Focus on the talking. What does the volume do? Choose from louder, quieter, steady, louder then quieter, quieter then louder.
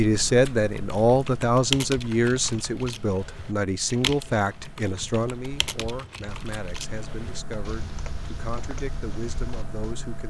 quieter.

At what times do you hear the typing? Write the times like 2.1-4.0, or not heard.
0.7-9.9.